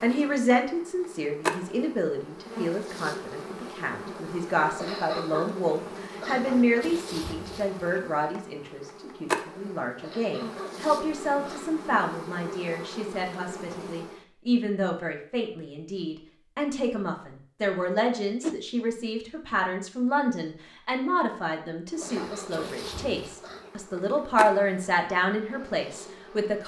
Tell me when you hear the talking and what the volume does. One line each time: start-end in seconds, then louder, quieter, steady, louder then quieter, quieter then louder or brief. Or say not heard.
0.0-26.6 steady.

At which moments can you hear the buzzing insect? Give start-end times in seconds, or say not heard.
0.0-14.2, 21.9-26.6.